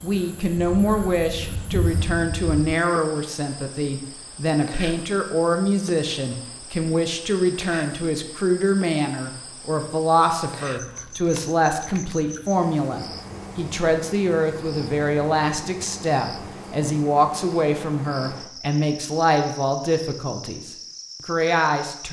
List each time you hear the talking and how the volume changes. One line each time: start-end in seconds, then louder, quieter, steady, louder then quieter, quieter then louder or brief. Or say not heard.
0.0-22.0 steady.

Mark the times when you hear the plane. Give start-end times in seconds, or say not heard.
not heard.